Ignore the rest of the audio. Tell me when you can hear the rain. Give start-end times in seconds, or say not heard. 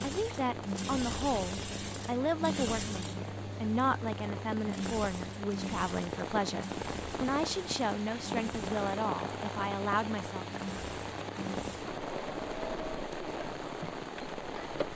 0.0-14.9.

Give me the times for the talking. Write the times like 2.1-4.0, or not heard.
0.0-10.4.